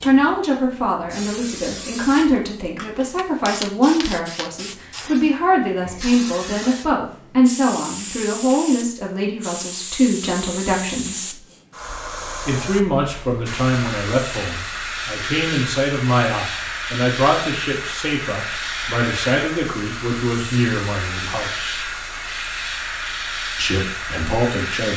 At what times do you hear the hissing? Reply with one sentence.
You can hear the hissing from 0.0 to 24.9 s.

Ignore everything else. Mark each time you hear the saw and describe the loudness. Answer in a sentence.
You can't hear the saw here.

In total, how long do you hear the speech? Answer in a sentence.
You can hear the speech for 22 seconds altogether.